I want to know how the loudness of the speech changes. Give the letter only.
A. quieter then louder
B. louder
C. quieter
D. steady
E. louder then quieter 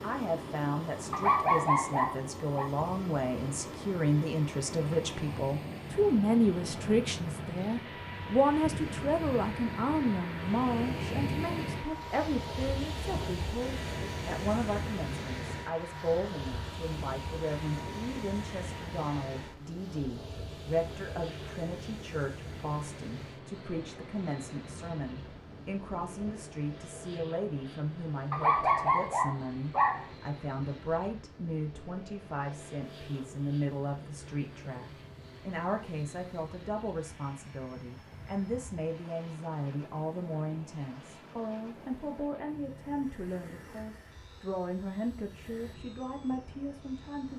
C.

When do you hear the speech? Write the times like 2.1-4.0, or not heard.
0.0-47.3.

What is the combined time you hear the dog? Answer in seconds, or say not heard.
3 s.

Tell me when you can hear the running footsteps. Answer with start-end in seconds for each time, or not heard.
not heard.